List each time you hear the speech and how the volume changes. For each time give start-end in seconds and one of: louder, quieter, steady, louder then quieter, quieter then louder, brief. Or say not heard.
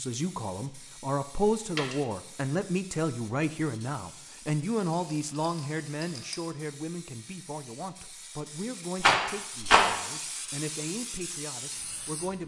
0.0-12.4 quieter.